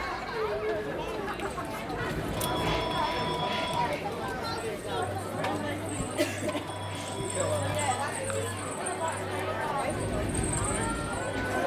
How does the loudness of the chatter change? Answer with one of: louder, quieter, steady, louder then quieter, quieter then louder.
steady.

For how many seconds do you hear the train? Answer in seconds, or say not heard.
5 s.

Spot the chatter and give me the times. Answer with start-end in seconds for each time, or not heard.
0.0-11.6.